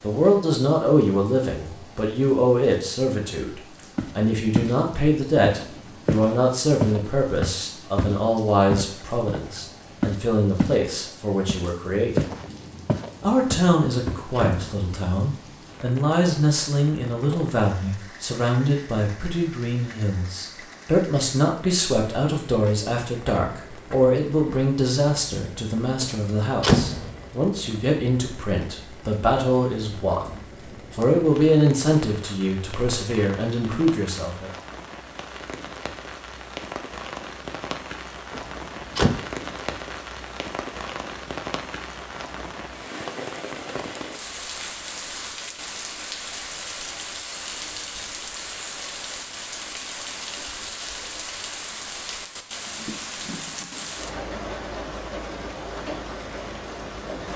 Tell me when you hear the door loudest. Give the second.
27 s.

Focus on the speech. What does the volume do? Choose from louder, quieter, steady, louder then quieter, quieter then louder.
steady.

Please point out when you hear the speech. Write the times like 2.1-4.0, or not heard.
0.0-12.2, 13.2-34.5.